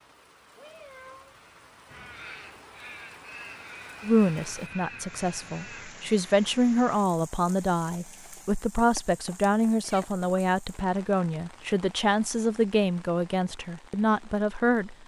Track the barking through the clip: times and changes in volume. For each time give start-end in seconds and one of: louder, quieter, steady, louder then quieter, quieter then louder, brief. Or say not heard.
not heard.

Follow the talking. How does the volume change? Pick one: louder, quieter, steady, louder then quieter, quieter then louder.
steady.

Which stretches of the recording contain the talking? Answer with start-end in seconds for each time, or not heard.
4.0-14.9.